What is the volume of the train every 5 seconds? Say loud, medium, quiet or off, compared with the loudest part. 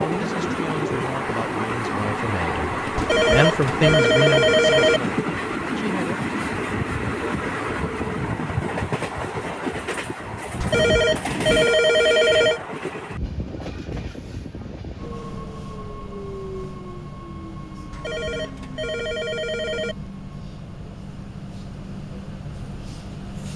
loud, loud, medium, medium, medium.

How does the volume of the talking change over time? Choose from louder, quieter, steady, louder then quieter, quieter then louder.
louder then quieter.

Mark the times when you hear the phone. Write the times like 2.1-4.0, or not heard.
3.0-5.0, 10.6-12.6, 17.9-19.9.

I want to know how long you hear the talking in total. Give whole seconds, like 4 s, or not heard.
6 s.